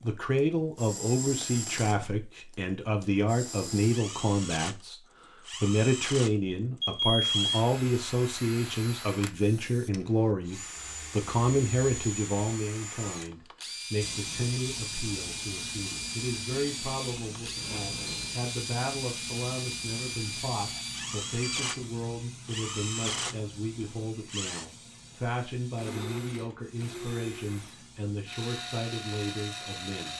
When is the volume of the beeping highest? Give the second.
7 s.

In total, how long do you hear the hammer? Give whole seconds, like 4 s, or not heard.
not heard.